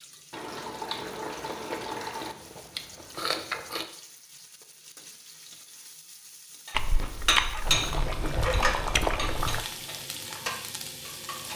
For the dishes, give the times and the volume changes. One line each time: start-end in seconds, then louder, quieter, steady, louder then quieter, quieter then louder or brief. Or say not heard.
6.7-11.5 quieter then louder.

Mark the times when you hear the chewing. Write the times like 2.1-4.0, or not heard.
1.0-3.9, 6.7-9.7.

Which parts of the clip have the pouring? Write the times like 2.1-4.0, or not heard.
0.3-2.4, 7.7-9.7.